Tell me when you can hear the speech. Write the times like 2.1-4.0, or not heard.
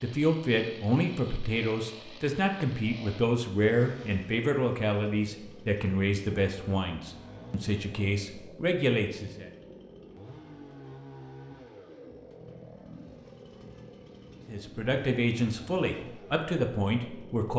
0.0-9.4, 14.4-17.5.